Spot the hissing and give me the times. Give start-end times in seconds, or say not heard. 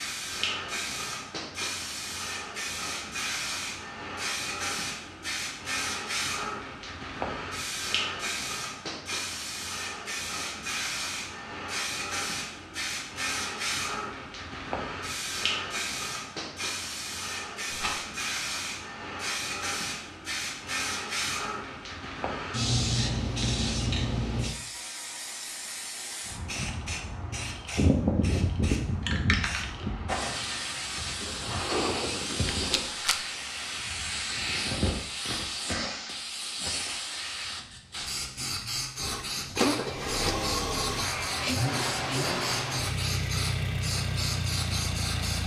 0.0-45.4.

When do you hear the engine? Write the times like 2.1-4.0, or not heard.
39.0-45.4.